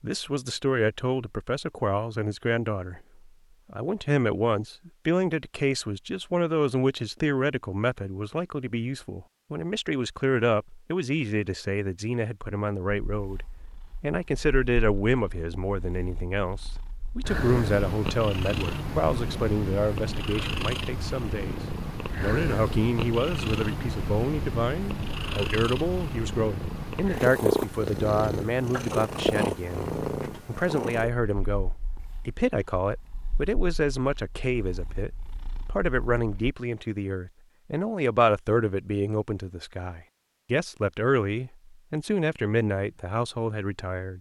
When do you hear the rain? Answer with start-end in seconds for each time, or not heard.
not heard.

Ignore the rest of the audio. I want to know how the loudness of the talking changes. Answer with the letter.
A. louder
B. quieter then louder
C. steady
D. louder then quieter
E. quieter
C.